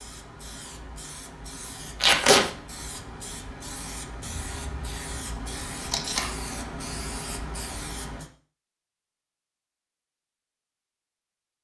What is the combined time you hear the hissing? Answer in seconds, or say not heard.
8 s.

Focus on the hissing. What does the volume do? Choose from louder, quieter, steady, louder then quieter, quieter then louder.
louder.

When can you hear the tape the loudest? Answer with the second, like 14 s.
2 s.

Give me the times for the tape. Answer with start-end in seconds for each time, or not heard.
2.0-2.5, 5.8-6.3.